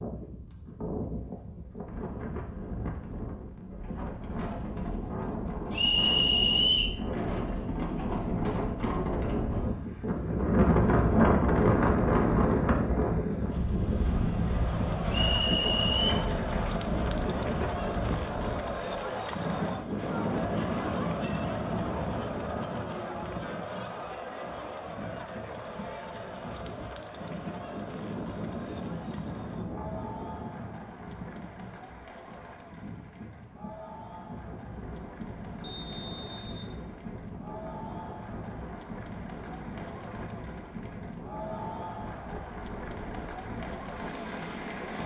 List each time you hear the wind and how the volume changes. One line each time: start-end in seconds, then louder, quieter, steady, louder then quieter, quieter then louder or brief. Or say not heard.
0.0-45.0 louder then quieter.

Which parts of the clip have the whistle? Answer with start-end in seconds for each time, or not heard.
5.7-7.0, 15.1-16.1, 35.6-36.8.